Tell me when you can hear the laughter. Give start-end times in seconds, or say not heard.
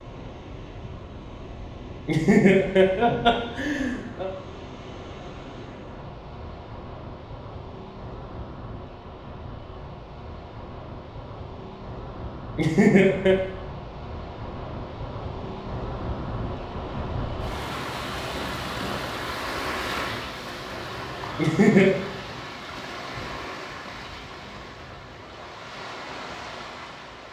2.0-4.3, 12.6-13.3, 21.4-21.9.